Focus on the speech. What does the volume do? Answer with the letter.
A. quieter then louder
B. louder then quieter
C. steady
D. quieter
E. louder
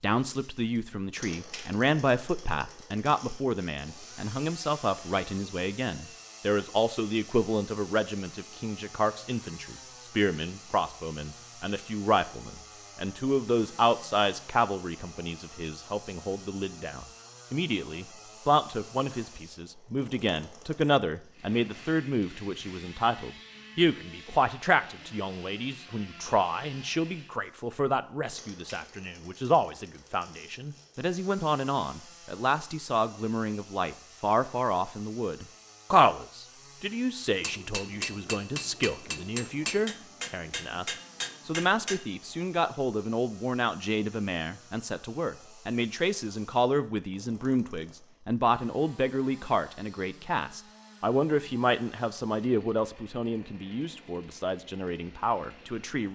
C.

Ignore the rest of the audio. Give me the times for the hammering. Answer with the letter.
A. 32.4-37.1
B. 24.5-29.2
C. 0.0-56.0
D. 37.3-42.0
D.